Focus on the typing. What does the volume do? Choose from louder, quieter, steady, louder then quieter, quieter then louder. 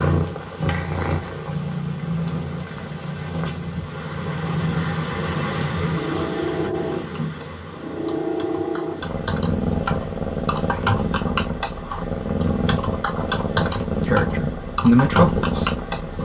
louder.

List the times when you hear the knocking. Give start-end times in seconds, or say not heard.
not heard.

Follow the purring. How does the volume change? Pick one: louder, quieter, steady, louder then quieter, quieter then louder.
steady.